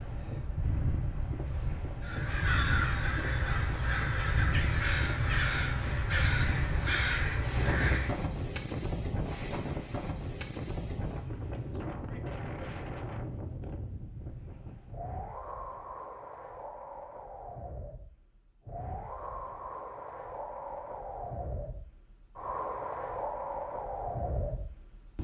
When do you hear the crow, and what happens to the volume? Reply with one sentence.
You can hear the crow from 2.0 to 8.2 s, at a steady volume.